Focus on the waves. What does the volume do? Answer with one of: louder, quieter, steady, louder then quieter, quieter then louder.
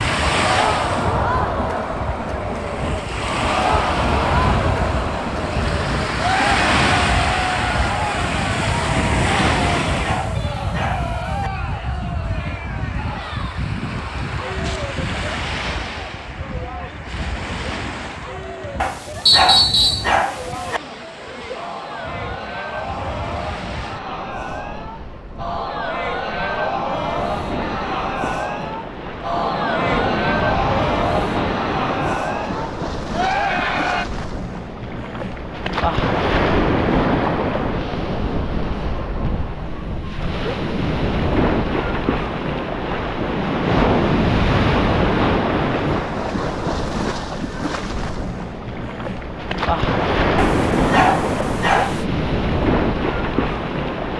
quieter then louder.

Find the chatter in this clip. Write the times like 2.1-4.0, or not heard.
0.1-34.0.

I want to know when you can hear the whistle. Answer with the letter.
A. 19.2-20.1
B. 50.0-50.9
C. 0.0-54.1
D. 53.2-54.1
A.